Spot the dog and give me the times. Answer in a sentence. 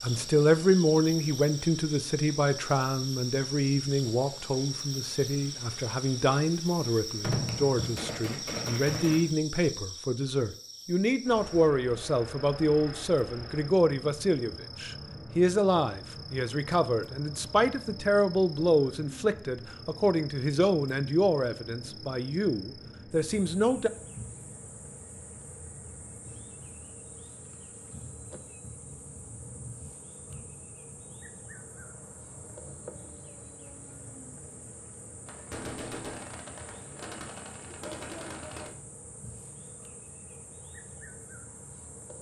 You can't hear the dog here.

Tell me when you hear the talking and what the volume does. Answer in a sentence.
You can hear the talking from 0.0 to 23.9 s, at a steady volume.